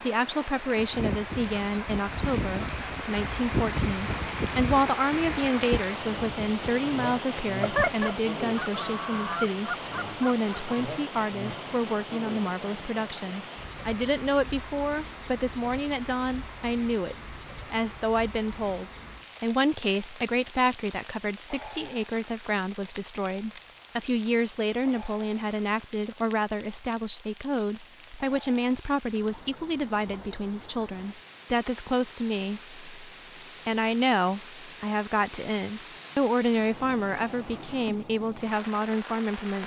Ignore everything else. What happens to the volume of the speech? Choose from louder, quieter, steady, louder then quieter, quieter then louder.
steady.